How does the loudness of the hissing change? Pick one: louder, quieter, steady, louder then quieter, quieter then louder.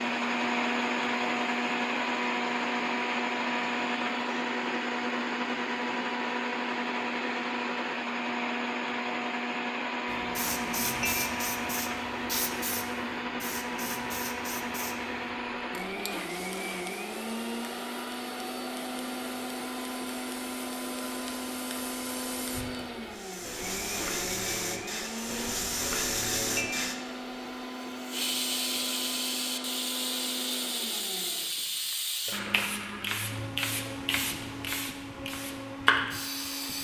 quieter then louder.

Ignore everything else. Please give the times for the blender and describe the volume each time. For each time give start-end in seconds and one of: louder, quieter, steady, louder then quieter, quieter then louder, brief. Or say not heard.
0.0-36.7 quieter.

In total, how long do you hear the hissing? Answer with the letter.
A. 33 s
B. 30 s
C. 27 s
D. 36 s
C.